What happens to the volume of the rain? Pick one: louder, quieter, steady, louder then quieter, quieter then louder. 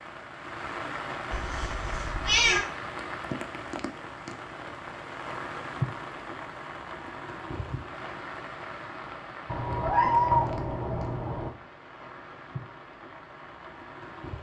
quieter.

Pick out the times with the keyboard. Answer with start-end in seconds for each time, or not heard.
not heard.